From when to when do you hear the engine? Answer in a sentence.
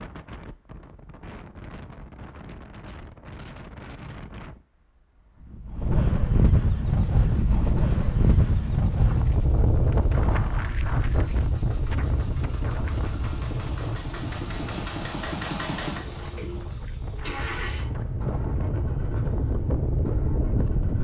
The engine can be heard from 6.5 to 21.0 s.